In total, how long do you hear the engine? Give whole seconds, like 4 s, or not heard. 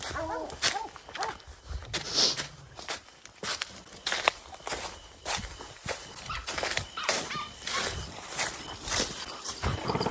2 s.